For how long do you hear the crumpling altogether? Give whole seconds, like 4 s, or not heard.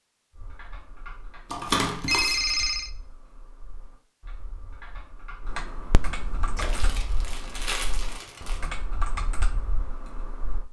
3 s.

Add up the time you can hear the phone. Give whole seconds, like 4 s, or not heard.
2 s.